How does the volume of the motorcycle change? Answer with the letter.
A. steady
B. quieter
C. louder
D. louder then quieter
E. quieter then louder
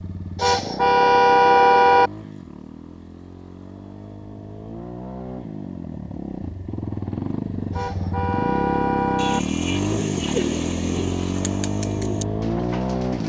C.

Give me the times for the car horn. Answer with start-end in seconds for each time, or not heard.
0.3-2.1, 7.7-9.4.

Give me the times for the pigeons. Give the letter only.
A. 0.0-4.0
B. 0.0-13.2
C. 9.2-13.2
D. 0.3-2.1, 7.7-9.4
C.